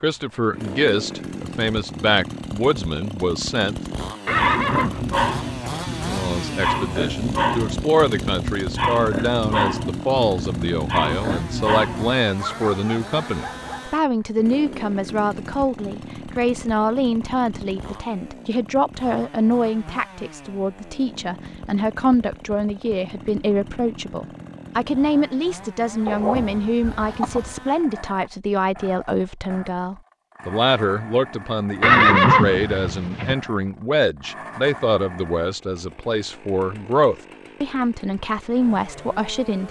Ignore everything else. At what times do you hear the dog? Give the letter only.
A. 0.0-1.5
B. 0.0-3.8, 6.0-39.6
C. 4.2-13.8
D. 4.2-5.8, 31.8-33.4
C.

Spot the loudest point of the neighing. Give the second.
32 s.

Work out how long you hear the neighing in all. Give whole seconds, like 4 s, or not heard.
3 s.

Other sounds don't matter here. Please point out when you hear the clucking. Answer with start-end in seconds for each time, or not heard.
26.1-27.6.